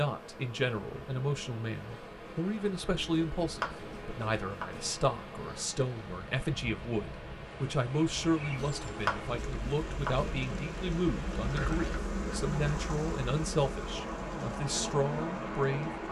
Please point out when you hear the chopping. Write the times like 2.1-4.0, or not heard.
3.0-4.9, 8.4-10.3.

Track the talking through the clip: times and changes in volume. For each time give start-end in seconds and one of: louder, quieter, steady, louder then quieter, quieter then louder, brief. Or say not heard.
0.0-15.9 steady.